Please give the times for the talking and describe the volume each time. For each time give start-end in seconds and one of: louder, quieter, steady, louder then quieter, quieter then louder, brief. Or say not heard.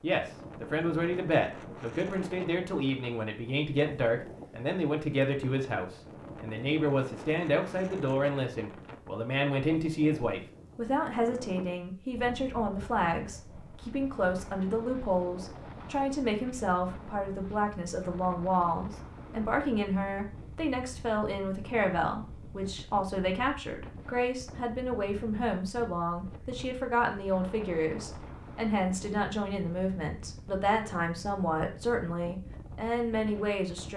0.0-33.9 steady.